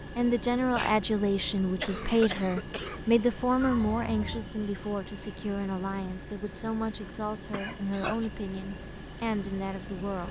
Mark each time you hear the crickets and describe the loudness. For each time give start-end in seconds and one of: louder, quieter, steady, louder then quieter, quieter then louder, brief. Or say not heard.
0.0-10.2 steady.